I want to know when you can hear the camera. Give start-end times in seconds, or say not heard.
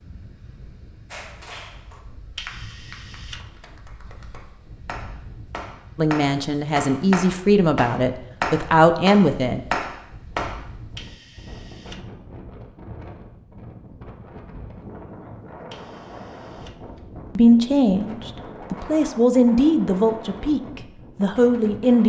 2.4-3.8, 10.9-12.1, 15.7-17.1.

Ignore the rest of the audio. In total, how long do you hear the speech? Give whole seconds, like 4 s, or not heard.
8 s.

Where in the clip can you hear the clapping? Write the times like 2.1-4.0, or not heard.
1.1-10.6.